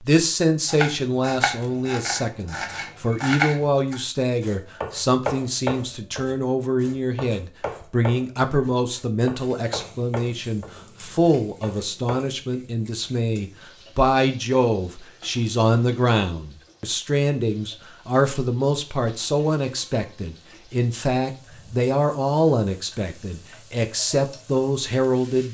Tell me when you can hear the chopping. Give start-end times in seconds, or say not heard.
0.7-12.2.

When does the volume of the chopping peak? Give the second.
3 s.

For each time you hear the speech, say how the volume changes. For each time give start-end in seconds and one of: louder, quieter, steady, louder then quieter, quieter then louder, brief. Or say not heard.
0.0-25.4 steady.